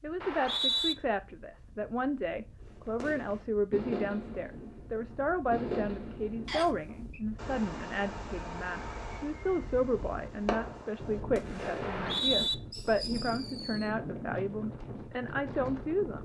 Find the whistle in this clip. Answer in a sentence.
The whistle can be heard from 0.2 to 0.9 s, from 6.5 to 7.2 s and from 11.8 to 12.6 s.